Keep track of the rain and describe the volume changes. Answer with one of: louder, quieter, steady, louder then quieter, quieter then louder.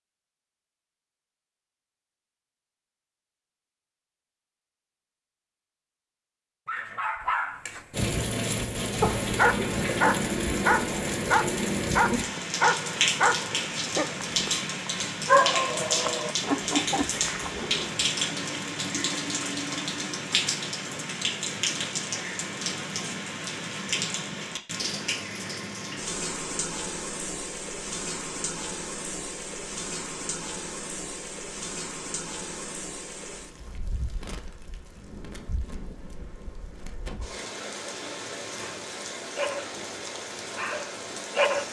quieter.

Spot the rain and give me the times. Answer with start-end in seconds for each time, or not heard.
7.9-41.6.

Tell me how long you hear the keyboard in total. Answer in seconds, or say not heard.
not heard.